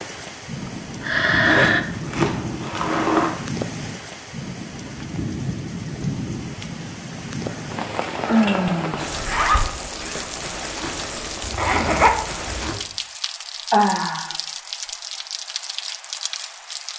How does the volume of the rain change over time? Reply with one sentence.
The volume of the rain stays about the same.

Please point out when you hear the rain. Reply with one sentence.
You can hear the rain from 0.0 to 16.9 s.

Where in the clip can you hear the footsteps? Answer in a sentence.
You can't hear the footsteps here.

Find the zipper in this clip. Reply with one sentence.
You can hear the zipper from 1.4 to 3.3 s, from 9.1 to 9.7 s and from 11.4 to 12.8 s.